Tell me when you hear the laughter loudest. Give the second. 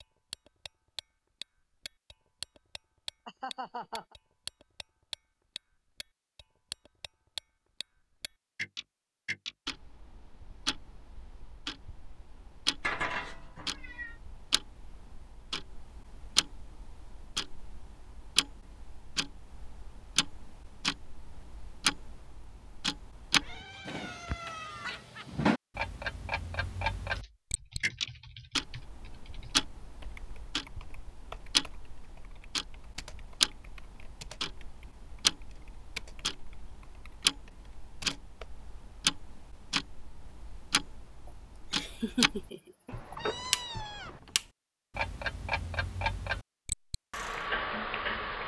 42 s.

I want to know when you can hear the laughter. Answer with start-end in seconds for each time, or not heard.
3.2-4.2, 24.6-25.4, 41.2-43.1.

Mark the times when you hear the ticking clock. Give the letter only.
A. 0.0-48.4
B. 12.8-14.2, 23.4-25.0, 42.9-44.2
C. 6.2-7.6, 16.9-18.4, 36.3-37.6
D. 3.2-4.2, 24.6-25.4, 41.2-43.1
A.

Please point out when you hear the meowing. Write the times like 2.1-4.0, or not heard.
12.8-14.2, 23.4-25.0, 42.9-44.2.